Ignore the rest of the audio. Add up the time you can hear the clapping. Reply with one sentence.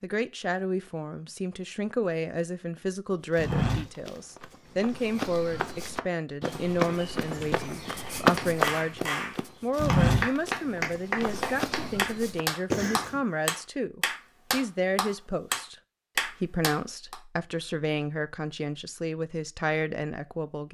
You can hear the clapping for 9 seconds altogether.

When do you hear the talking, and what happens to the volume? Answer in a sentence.
The talking can be heard from 0.0 to 20.6 s, at a steady volume.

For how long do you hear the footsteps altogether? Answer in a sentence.
You can hear the footsteps for 10 seconds altogether.